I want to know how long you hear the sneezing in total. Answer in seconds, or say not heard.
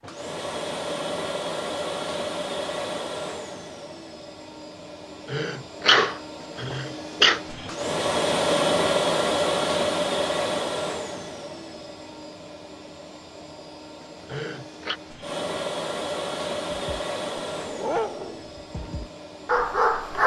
3 s.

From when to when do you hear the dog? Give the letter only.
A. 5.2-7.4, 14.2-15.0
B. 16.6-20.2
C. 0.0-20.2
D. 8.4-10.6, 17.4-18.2
B.